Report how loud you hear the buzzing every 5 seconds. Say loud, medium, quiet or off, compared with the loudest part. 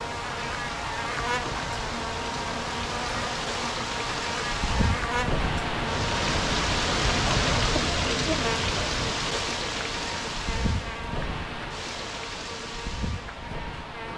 loud, loud, medium.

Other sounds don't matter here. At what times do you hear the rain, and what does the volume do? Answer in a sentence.
The rain can be heard from 0.0 to 14.1 s, getting louder then quieter.